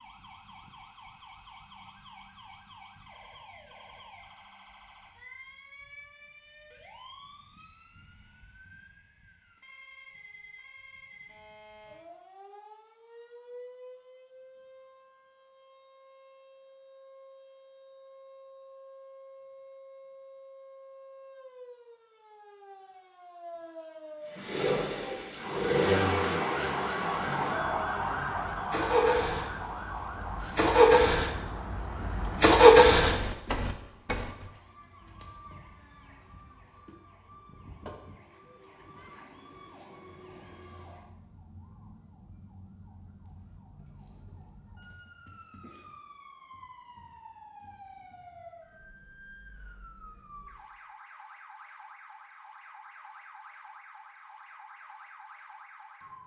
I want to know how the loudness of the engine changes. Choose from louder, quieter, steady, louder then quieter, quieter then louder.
quieter then louder.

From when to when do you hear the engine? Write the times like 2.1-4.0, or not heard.
24.4-34.3.